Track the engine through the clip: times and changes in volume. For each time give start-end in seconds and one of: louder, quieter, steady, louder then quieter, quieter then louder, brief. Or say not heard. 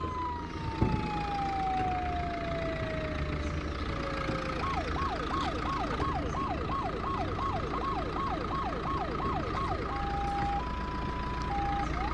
0.0-12.0 steady.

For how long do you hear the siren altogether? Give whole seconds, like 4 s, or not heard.
12 s.